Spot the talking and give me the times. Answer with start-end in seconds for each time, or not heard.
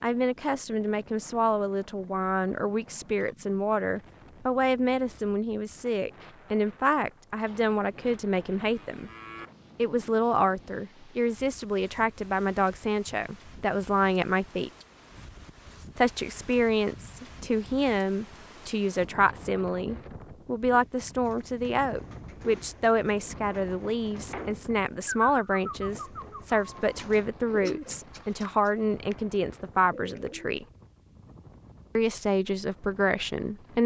0.0-9.1, 9.8-14.7, 15.9-30.6, 31.9-33.8.